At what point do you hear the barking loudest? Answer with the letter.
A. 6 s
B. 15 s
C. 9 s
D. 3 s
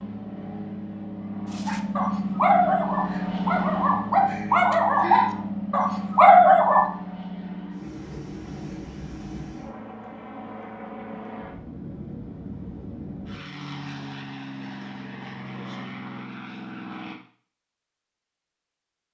A.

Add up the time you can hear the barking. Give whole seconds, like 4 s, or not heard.
5 s.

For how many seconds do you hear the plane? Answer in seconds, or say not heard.
17 s.